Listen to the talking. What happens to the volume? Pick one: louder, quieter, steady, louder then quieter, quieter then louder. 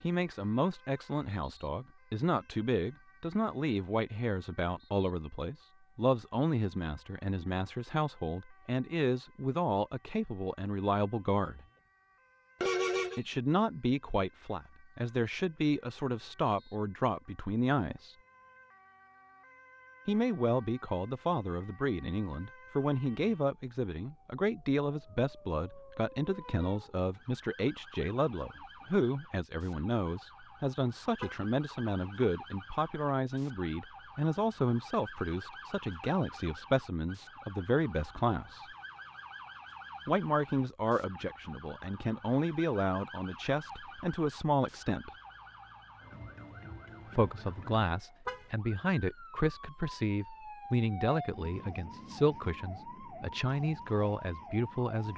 steady.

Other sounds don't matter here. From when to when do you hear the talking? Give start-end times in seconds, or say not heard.
0.0-11.7, 13.2-18.1, 20.1-38.6, 40.0-45.1, 47.1-55.1.